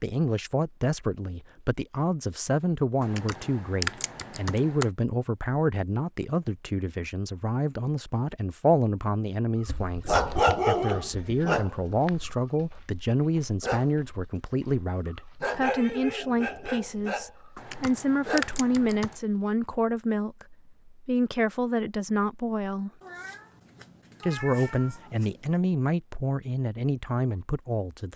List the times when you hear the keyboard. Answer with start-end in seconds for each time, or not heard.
3.0-4.8, 17.6-19.1.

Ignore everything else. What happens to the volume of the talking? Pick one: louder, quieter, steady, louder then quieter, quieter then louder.
steady.